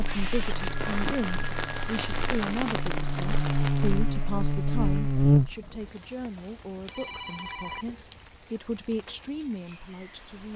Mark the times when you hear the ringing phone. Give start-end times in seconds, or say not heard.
0.1-2.4, 6.8-8.0.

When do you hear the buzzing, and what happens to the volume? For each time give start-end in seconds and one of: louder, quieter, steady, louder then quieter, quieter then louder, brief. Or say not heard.
0.0-5.5 louder.